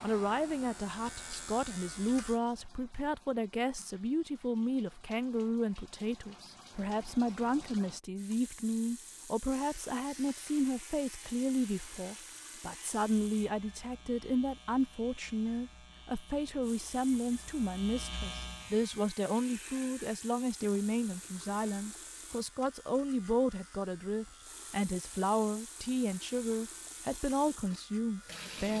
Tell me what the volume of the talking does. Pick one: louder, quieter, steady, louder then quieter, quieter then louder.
steady.